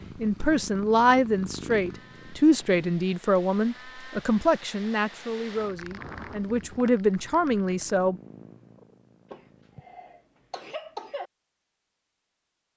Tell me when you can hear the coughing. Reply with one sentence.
You can hear the coughing from 9.3 to 11.3 s.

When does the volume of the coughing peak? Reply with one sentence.
The loudest moment of the coughing is at 11 seconds.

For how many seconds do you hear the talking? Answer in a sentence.
You can hear the talking for 8 seconds altogether.